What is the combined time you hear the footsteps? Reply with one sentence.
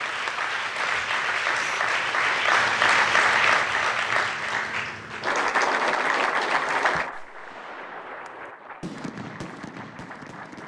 You can't hear the footsteps here.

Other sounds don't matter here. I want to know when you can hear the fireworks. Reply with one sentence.
The fireworks can be heard from 7.1 to 10.6 s.